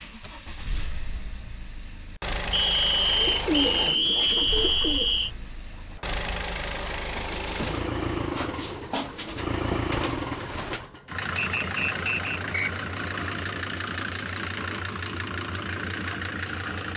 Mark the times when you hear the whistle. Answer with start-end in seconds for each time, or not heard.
2.5-5.3, 11.3-12.7.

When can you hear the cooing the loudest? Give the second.
4 s.